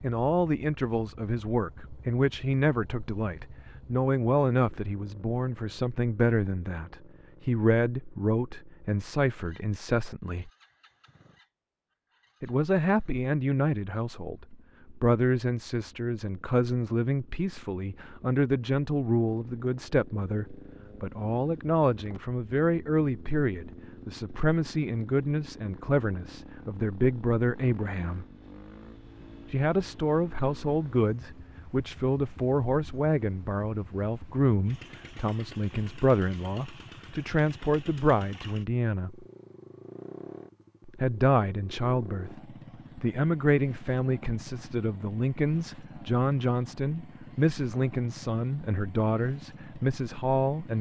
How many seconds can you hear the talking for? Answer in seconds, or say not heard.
46 s.